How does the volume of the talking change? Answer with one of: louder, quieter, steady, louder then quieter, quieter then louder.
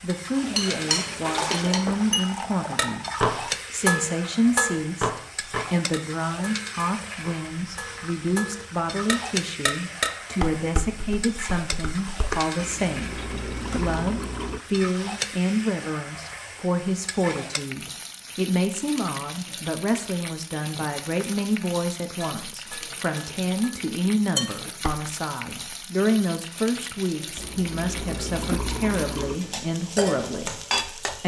steady.